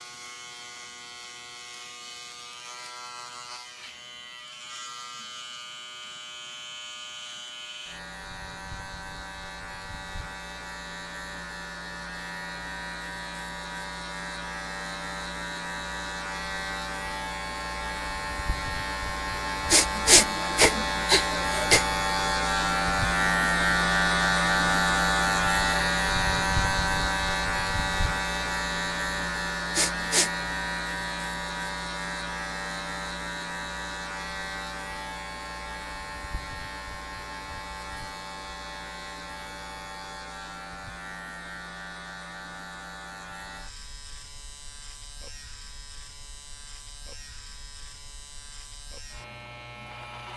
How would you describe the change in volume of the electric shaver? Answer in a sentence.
The loudness of the electric shaver goes up, then down.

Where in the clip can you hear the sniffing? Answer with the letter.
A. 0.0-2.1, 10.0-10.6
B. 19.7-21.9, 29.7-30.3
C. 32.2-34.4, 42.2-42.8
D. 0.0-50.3
B.